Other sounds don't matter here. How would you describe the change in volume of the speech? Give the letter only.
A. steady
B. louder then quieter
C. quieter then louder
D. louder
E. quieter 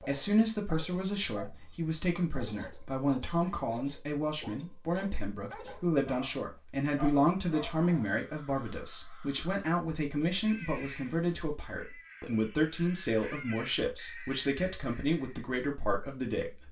A.